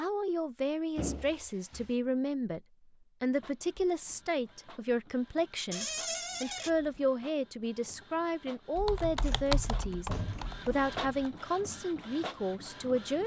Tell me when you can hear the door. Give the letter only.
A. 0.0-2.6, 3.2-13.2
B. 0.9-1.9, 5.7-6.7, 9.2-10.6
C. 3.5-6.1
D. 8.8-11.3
B.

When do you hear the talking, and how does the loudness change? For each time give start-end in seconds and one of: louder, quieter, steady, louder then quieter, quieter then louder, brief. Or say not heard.
0.0-2.6 brief
3.2-13.2 steady.